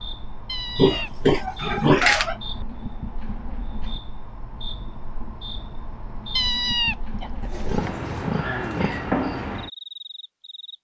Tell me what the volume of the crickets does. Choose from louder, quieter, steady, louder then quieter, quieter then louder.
louder.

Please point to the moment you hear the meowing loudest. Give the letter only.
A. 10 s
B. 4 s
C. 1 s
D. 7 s
D.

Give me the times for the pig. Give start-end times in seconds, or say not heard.
0.8-2.4, 7.4-9.1.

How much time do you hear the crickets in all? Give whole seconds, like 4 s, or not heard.
11 s.